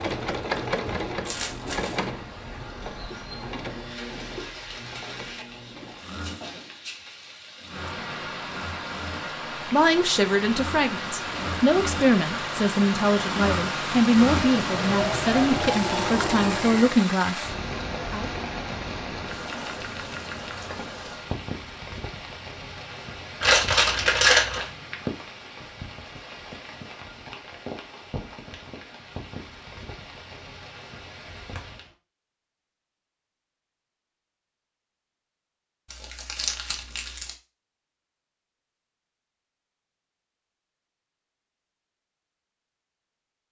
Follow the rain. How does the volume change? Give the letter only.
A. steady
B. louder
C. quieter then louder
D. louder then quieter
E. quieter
D.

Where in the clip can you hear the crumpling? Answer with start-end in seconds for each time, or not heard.
1.2-2.0, 23.4-24.7, 35.9-37.3.